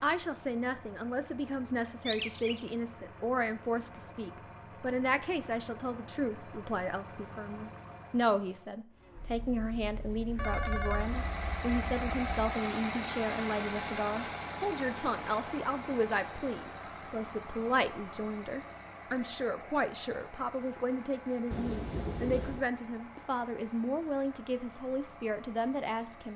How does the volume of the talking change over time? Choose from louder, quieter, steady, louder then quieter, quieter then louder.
steady.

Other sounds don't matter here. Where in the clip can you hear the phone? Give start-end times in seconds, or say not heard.
2.0-2.6, 10.3-12.3, 21.5-22.6.